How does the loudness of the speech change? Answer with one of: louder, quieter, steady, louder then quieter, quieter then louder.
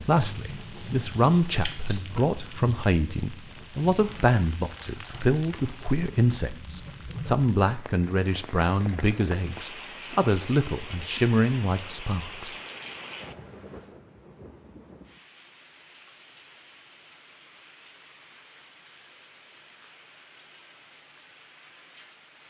steady.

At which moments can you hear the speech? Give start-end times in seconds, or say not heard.
0.1-12.6.